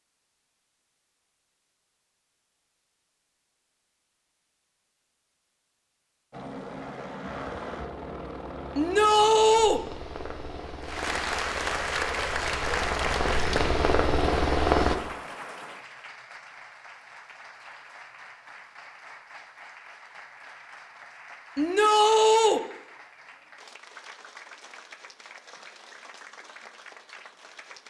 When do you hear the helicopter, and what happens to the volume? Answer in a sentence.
The helicopter can be heard from 6.3 to 14.9 s, getting louder.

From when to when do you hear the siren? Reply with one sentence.
The siren can't be heard in this clip.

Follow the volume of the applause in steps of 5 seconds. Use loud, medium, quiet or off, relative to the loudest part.
off, off, loud, quiet, quiet, quiet.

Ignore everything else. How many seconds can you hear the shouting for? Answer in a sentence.
The shouting can be heard for 2 seconds in total.